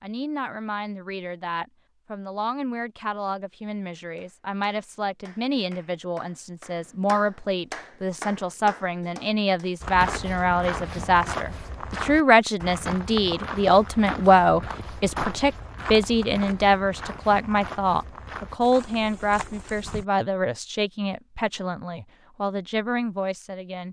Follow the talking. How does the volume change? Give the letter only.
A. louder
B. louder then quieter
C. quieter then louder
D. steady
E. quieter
B.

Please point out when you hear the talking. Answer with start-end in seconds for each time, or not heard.
0.0-23.8.